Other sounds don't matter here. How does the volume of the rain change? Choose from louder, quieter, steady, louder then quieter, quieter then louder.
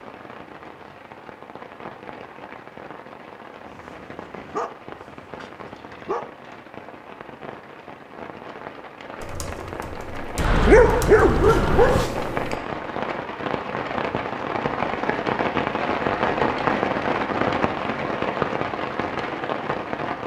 louder.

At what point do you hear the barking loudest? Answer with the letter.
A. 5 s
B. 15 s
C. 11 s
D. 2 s
C.